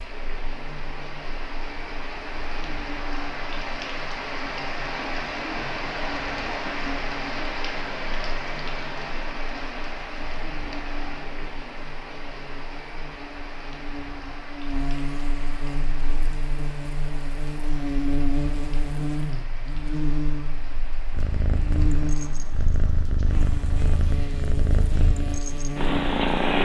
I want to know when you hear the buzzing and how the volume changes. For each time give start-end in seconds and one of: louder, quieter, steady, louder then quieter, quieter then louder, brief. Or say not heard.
0.2-26.5 louder.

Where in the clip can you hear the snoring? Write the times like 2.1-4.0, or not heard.
not heard.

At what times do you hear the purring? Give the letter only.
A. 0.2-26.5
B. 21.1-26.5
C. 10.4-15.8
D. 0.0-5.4
B.